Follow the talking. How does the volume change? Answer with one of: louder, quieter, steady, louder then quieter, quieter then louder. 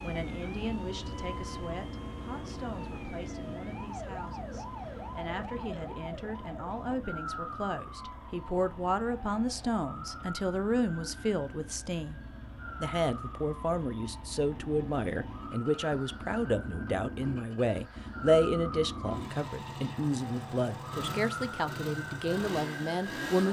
louder.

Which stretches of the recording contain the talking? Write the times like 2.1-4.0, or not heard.
0.0-12.2, 12.8-23.4.